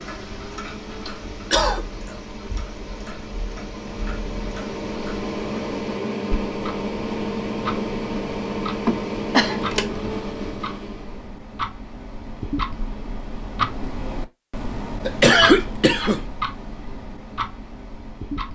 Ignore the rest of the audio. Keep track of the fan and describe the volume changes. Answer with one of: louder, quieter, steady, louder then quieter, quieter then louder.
louder.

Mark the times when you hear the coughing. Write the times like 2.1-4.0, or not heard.
1.1-1.9, 8.8-9.6, 15.1-16.2.